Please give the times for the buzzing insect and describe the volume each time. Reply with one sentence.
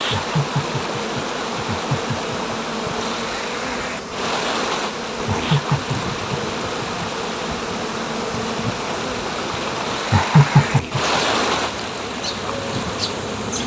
You can hear the buzzing insect from 0.0 to 13.6 s, at a steady volume.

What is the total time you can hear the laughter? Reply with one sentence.
The laughter can be heard for 5 seconds in total.